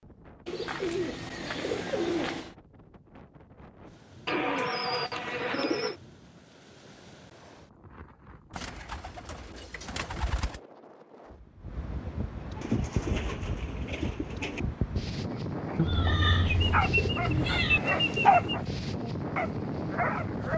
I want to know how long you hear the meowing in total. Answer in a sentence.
The meowing can be heard for 2 seconds in total.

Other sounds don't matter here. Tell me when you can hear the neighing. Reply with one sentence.
You can't hear the neighing here.